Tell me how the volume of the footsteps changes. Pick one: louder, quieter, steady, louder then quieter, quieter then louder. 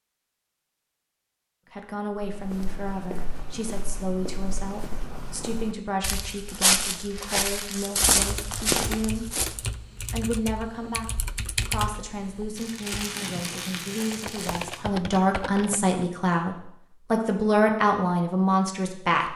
louder.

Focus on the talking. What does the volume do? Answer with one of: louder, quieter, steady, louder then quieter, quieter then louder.
louder.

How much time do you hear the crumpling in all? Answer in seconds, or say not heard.
3 s.